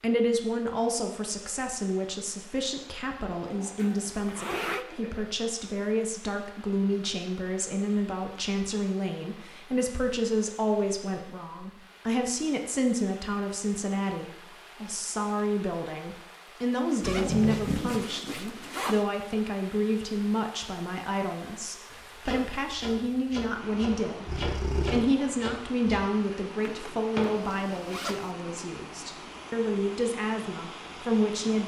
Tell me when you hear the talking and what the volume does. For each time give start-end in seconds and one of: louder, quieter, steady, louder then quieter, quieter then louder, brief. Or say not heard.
0.0-31.6 steady.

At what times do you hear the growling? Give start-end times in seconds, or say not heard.
3.4-5.2, 17.0-18.1, 24.2-25.1.